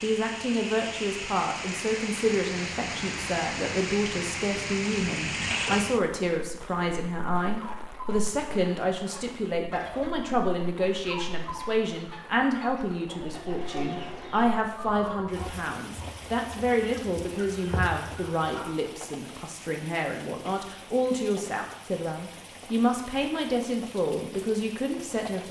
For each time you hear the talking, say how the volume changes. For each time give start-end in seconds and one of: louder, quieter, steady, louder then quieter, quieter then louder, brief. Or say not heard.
0.0-25.4 steady.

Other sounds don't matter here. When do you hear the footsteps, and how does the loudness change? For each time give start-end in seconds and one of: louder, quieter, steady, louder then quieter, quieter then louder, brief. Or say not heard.
not heard.